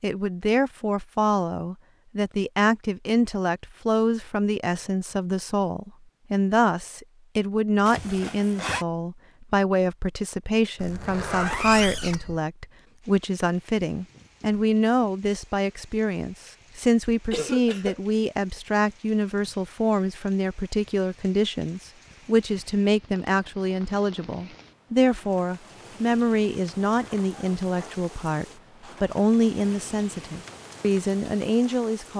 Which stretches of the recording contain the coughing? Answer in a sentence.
The coughing can be heard from 17.3 to 18.0 s.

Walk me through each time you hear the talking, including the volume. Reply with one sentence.
The talking can be heard from 0.0 to 32.1 s, at a steady volume.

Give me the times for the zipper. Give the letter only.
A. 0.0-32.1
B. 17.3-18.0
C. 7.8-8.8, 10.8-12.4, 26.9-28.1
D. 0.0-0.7
C.